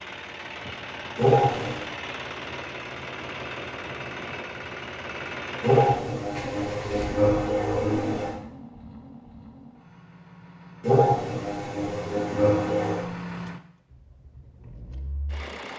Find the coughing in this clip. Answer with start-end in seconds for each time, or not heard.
1.1-1.9, 5.6-8.3, 10.8-13.1.